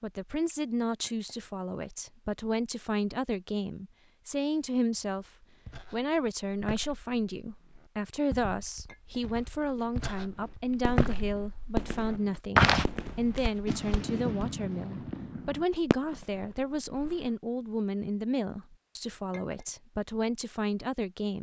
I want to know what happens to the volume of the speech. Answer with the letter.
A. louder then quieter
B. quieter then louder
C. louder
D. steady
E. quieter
D.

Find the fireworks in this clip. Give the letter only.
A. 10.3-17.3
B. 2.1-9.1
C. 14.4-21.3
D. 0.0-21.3
A.